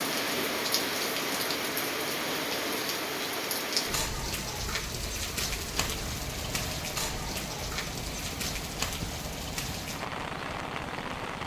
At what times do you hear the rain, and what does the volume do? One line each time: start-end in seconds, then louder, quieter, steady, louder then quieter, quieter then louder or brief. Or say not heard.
0.0-11.4 quieter.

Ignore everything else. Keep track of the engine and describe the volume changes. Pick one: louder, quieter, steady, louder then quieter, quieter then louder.
steady.